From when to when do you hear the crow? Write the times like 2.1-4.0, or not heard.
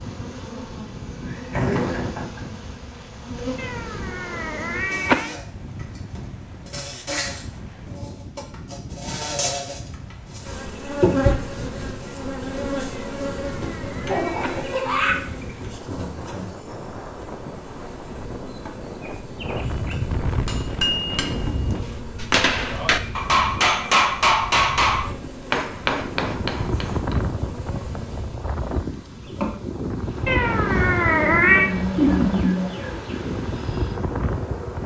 not heard.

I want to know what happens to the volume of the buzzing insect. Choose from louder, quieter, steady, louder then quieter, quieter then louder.
louder then quieter.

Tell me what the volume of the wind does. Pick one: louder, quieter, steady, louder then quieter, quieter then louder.
louder.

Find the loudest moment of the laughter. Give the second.
32 s.